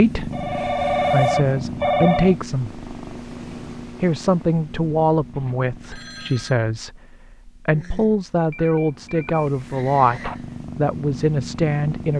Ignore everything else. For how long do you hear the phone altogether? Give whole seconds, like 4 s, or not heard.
5 s.